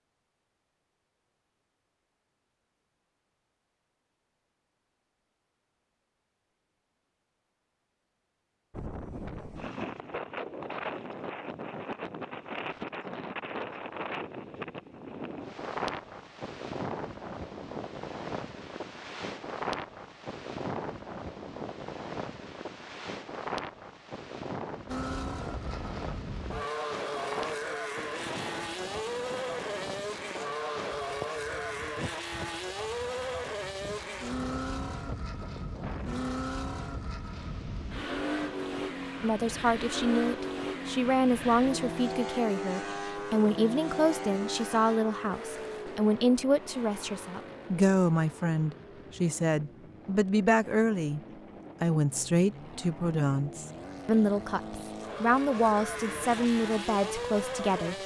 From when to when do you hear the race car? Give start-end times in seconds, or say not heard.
24.9-58.0.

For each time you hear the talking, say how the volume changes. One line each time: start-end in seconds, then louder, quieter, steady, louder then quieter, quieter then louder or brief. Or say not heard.
39.2-51.2 steady
51.8-58.0 steady.